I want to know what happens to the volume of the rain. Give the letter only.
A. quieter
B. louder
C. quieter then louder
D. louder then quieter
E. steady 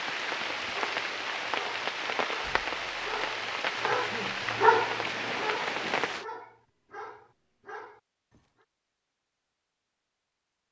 E.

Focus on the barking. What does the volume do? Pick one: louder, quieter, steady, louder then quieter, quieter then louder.
louder then quieter.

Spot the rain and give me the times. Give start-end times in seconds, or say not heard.
0.0-6.2.